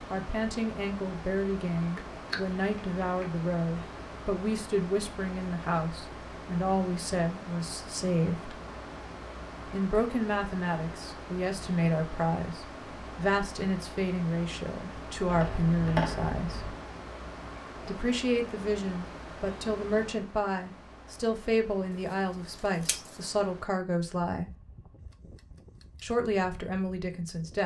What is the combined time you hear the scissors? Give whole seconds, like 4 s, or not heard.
3 s.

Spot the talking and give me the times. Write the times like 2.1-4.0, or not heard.
0.1-8.6, 9.7-16.8, 17.9-24.5, 26.0-27.6.